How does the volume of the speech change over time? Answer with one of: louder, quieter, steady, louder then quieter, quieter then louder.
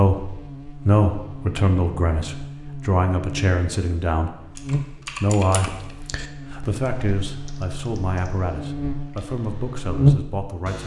quieter.